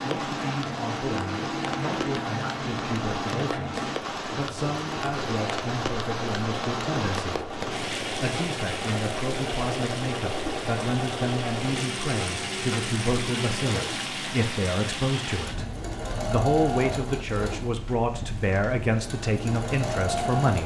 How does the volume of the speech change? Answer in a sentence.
The loudness of the speech goes up.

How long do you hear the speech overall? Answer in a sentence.
You can hear the speech for 20 seconds altogether.